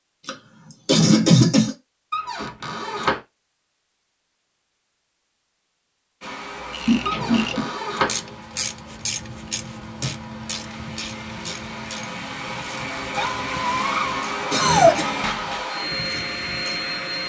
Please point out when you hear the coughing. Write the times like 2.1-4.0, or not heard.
0.2-1.8, 6.8-7.7, 14.5-15.3.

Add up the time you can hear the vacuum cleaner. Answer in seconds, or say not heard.
11 s.